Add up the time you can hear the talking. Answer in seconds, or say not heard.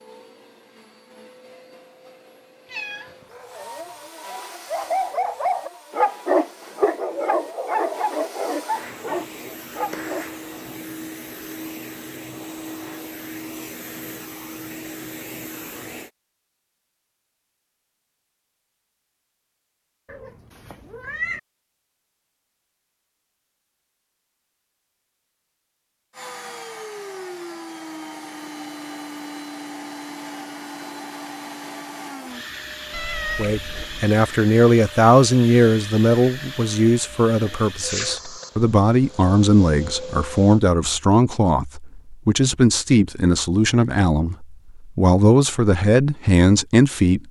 14 s.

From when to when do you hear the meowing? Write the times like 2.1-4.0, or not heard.
2.6-4.0, 20.1-21.4, 32.9-33.9.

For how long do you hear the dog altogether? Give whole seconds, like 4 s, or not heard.
6 s.